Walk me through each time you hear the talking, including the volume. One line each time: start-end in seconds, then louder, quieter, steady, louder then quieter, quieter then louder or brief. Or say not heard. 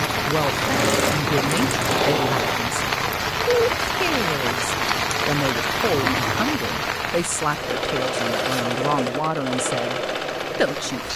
0.0-11.1 steady.